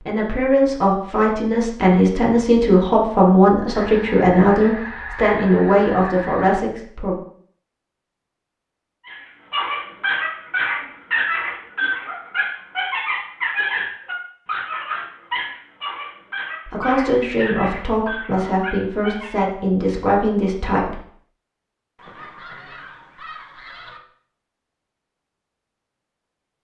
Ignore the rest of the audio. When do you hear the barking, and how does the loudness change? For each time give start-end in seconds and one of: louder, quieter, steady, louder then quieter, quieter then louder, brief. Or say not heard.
9.1-19.4 quieter.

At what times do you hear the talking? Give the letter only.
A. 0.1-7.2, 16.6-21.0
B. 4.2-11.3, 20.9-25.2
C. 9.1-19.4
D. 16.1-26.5
A.